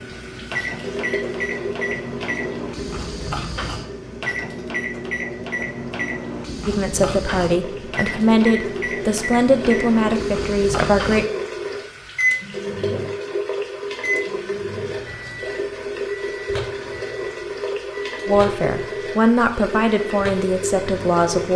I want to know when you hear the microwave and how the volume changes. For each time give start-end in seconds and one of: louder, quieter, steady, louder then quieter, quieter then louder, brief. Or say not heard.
0.0-21.5 quieter.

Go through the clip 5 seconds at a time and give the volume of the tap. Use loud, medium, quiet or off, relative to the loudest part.
medium, medium, loud, loud, loud.